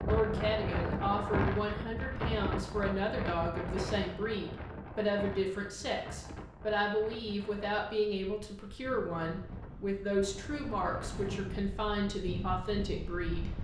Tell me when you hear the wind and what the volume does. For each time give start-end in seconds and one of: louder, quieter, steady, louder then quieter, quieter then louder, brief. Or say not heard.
0.0-13.6 quieter then louder.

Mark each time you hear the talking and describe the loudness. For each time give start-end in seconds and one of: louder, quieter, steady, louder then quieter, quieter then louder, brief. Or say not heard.
0.0-13.5 steady.